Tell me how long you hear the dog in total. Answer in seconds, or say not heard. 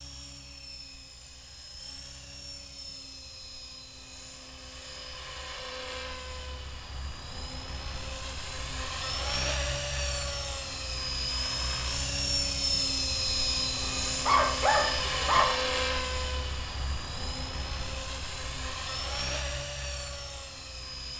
2 s.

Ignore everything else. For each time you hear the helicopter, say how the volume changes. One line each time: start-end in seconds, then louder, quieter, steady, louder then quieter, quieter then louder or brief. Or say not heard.
0.0-21.1 louder then quieter.